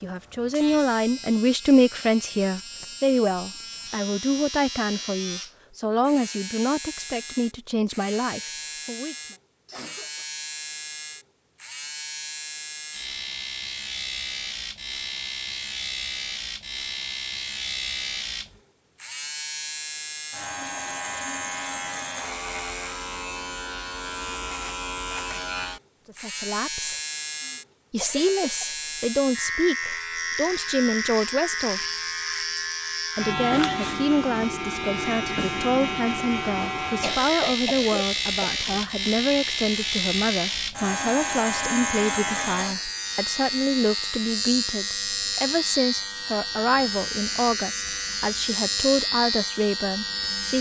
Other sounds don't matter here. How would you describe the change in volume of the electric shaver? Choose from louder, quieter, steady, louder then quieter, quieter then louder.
louder.